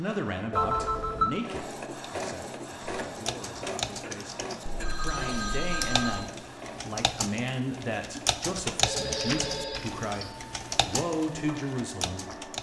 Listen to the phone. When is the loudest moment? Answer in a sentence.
The loudest moment of the phone is at 1 second.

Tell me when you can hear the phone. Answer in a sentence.
You can hear the phone from 0.5 to 1.3 s, from 4.7 to 6.2 s and from 8.8 to 10.3 s.